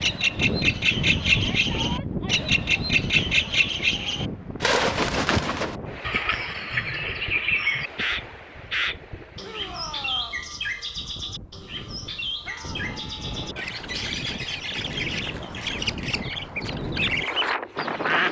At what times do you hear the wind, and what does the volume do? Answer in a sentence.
The wind can be heard from 0.0 to 18.2 s, getting quieter then louder.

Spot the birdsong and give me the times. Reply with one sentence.
The birdsong can be heard from 0.0 to 18.2 s.